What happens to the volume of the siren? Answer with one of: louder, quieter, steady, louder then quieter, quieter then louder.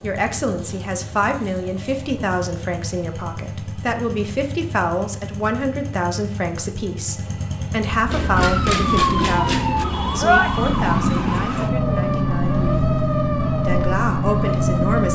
steady.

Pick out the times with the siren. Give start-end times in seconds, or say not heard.
8.1-15.1.